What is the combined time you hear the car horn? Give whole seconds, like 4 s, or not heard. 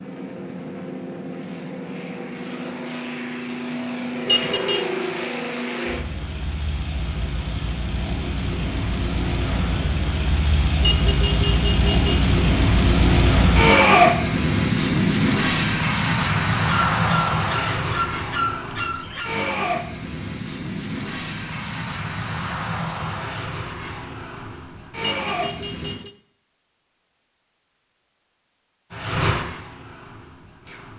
3 s.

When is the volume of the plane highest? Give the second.
14 s.